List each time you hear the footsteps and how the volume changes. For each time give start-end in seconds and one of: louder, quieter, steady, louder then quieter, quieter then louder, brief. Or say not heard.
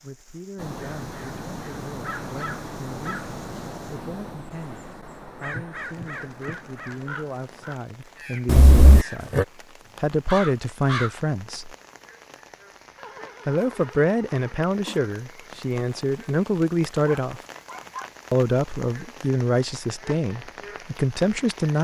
not heard.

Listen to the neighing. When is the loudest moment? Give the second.
9 s.